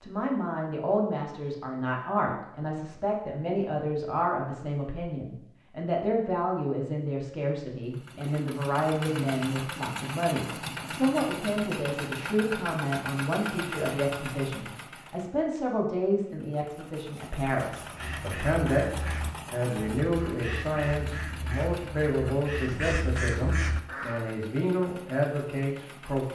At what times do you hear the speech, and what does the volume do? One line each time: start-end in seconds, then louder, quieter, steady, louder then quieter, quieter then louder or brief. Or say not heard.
0.0-26.2 steady.